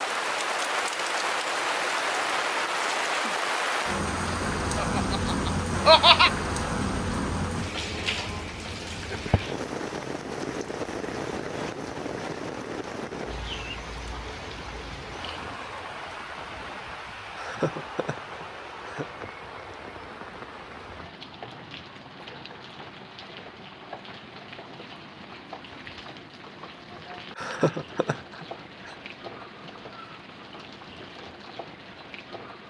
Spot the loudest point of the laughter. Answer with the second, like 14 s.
6 s.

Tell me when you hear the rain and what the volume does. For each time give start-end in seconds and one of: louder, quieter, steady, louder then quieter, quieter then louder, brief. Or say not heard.
0.0-32.6 quieter.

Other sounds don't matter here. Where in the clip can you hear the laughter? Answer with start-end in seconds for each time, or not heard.
4.8-6.3, 17.4-19.1, 27.4-28.9.